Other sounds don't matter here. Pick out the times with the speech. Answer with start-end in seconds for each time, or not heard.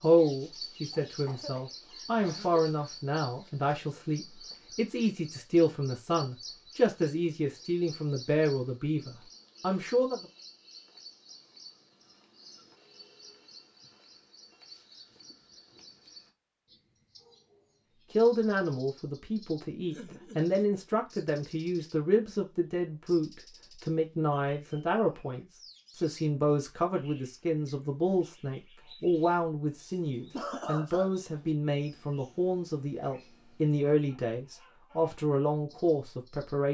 0.0-10.2, 18.1-36.6.